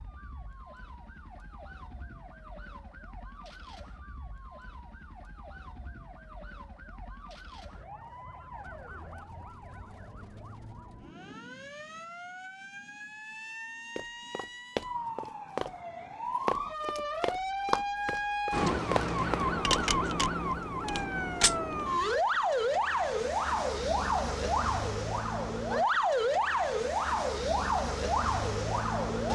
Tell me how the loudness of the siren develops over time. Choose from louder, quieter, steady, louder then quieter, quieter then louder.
louder.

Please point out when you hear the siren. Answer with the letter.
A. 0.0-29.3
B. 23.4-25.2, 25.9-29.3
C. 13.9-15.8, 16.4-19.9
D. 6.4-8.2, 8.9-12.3
A.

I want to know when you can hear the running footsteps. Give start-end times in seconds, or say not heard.
13.9-15.8, 16.4-19.9.